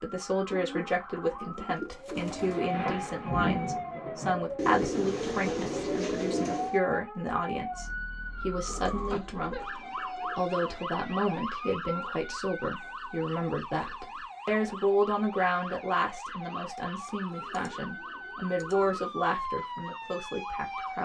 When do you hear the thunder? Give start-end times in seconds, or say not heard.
2.5-6.0.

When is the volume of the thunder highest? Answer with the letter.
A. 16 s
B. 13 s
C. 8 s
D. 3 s
D.